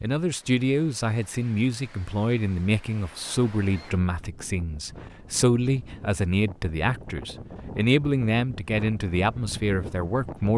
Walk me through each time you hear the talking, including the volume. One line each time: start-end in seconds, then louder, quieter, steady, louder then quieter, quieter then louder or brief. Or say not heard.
0.0-10.5 steady.